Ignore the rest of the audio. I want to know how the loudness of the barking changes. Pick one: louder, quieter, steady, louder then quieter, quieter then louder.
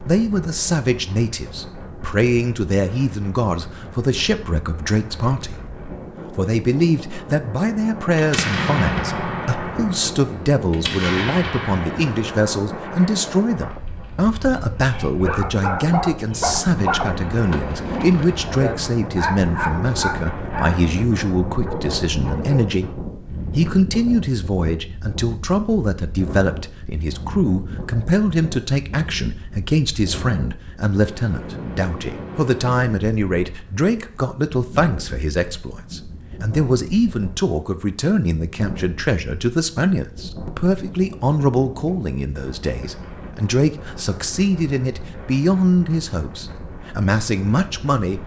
louder then quieter.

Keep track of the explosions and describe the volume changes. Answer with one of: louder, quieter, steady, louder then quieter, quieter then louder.
quieter then louder.